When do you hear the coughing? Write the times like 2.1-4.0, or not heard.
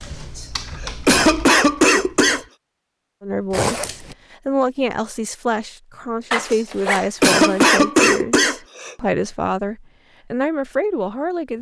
0.3-2.5, 6.5-8.9.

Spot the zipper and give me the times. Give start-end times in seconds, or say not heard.
3.5-4.2, 6.3-7.7.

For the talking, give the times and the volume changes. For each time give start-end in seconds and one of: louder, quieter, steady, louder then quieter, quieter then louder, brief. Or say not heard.
3.2-11.5 steady.